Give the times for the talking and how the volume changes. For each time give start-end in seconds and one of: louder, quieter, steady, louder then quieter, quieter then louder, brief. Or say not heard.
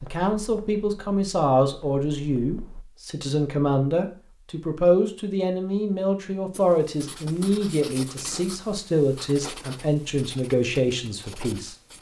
0.0-11.9 steady.